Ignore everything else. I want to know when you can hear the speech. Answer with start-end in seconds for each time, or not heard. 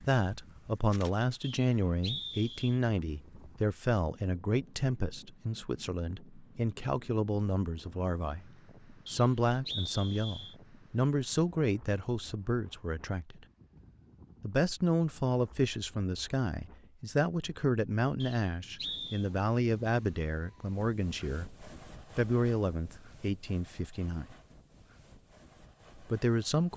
0.0-13.4, 14.4-24.4, 26.1-26.7.